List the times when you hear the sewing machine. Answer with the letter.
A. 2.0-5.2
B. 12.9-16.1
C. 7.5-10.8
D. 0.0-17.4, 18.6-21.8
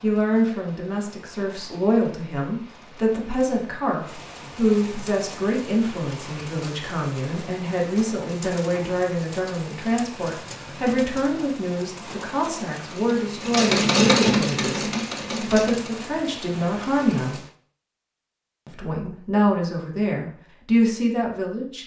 B.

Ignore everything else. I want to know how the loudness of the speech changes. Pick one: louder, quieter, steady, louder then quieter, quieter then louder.
steady.